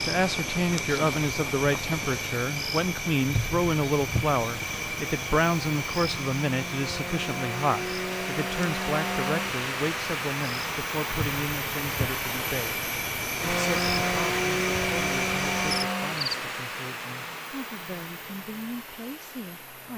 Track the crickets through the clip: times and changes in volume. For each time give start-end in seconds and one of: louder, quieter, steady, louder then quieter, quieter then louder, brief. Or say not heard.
0.0-16.4 quieter then louder.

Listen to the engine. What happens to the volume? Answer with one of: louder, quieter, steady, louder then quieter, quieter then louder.
louder then quieter.